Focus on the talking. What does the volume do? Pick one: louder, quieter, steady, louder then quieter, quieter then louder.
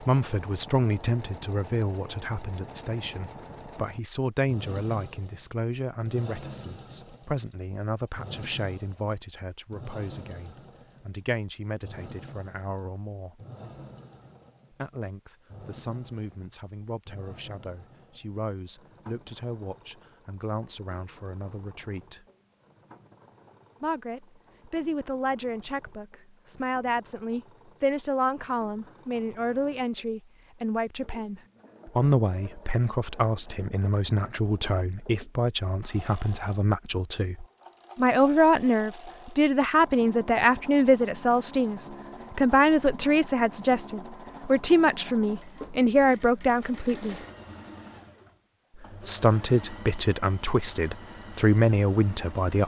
quieter then louder.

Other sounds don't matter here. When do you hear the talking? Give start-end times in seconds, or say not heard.
0.0-13.4, 14.7-22.2, 23.8-47.1, 49.0-52.6.